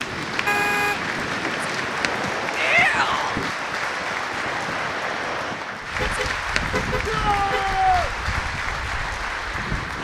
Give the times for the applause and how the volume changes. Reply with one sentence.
You can hear the applause from 0.0 to 10.0 s, at a steady volume.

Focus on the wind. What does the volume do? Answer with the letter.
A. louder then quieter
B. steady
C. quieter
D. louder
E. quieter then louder
C.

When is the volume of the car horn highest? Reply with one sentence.
The loudest moment of the car horn is at 1 second.